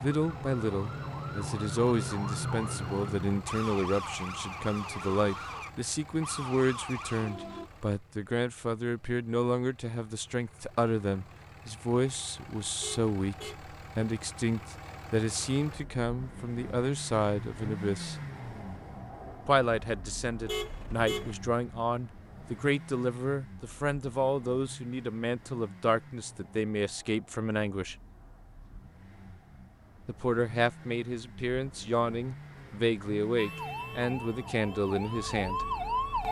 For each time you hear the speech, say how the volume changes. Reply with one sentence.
You can hear the speech from 0.0 to 18.1 s, at a steady volume; from 19.4 to 27.9 s, at a steady volume; and from 30.1 to 35.6 s, at a steady volume.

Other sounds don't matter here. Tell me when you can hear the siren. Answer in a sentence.
You can hear the siren from 0.0 to 7.7 s and from 33.4 to 36.2 s.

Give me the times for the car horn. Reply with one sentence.
You can hear the car horn from 12.8 to 13.6 s and from 20.4 to 21.4 s.